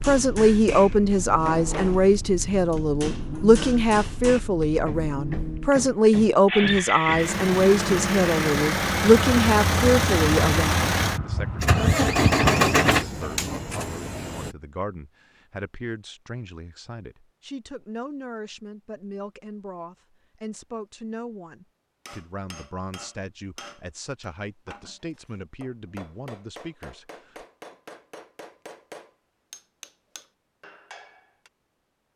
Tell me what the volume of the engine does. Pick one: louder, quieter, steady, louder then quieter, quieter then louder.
louder.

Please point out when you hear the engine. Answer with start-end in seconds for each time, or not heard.
0.0-14.6.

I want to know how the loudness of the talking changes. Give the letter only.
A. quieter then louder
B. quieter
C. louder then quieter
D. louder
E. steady
B.